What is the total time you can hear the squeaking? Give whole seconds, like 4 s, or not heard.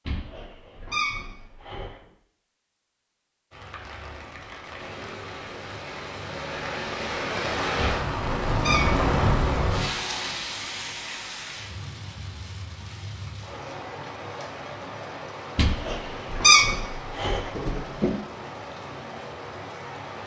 6 s.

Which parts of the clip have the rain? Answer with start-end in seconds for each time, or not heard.
3.5-20.2.